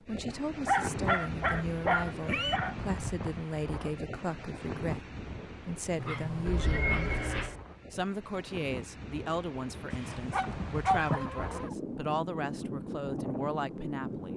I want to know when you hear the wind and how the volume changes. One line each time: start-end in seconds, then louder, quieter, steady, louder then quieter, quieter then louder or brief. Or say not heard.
0.0-14.3 quieter then louder.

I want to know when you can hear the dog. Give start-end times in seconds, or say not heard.
0.7-2.8, 6.0-7.5, 10.3-11.8.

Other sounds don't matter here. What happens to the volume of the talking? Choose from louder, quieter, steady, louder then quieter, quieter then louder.
steady.